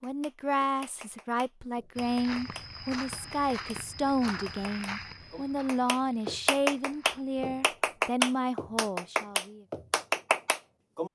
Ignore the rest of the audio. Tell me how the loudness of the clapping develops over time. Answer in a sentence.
The loudness of the clapping goes up.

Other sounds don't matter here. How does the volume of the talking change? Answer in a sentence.
The volume of the talking stays about the same.